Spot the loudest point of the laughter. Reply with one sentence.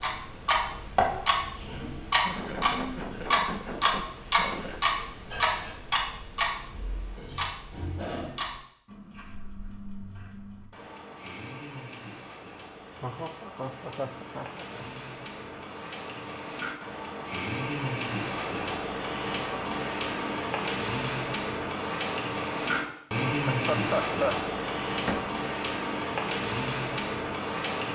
The volume of the laughter peaks at 24 seconds.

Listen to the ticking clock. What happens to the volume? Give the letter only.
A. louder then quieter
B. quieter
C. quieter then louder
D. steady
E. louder
C.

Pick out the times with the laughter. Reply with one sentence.
The laughter can be heard from 2.2 to 4.8 s, from 12.9 to 14.9 s and from 23.5 to 24.4 s.